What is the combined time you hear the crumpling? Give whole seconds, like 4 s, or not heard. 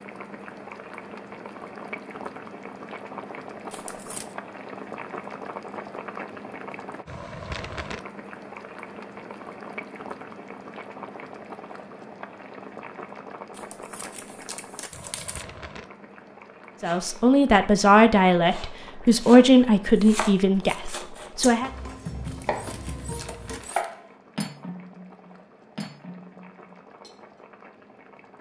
4 s.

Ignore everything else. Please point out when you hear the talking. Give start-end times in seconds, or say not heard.
16.8-21.7.